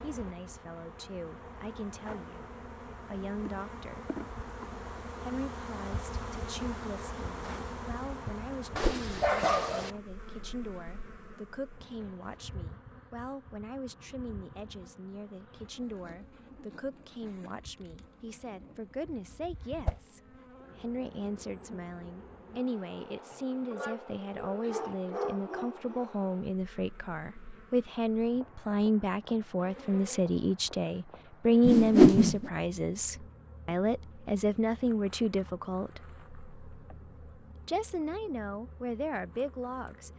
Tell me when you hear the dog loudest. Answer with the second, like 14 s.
9 s.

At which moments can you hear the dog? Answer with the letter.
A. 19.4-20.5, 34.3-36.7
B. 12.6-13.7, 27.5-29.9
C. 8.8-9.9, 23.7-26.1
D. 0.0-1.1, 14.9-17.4
C.